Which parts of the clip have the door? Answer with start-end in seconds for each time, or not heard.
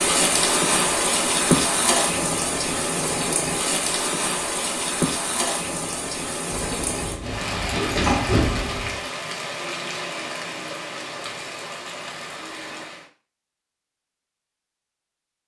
6.5-9.0.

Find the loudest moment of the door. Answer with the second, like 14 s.
8 s.